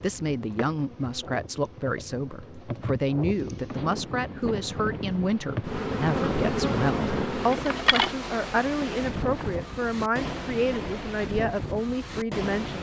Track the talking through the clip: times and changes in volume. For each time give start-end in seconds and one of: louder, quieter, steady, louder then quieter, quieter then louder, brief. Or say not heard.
0.0-12.7 steady.